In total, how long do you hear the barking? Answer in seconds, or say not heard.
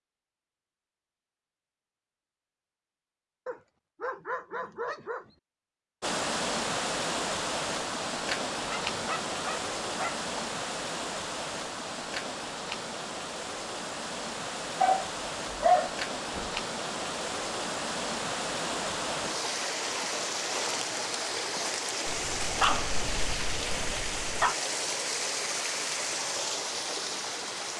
8 s.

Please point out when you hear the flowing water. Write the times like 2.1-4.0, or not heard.
6.0-27.7.